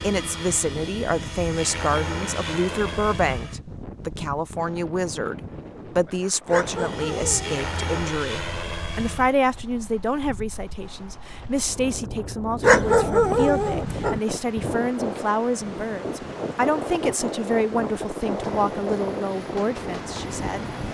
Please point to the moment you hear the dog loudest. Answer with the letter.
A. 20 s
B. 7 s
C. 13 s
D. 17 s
C.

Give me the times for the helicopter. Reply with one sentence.
You can hear the helicopter from 0.0 to 3.6 s, from 6.7 to 9.3 s and from 18.1 to 20.8 s.